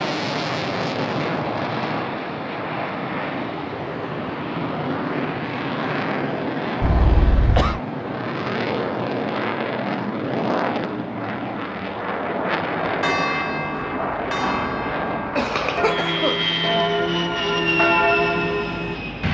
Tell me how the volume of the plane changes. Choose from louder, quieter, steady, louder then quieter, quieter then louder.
steady.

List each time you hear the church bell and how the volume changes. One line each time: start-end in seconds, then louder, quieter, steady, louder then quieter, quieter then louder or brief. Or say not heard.
12.8-19.0 louder.